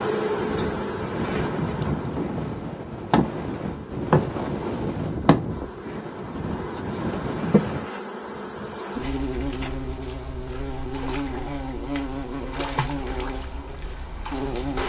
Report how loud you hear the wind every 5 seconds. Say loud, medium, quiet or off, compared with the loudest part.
loud, loud, off.